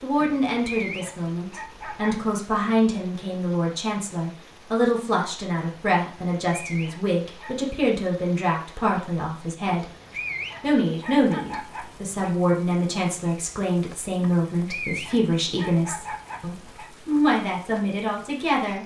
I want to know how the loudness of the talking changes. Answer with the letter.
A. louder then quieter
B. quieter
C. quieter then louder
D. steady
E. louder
D.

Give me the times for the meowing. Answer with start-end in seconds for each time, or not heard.
not heard.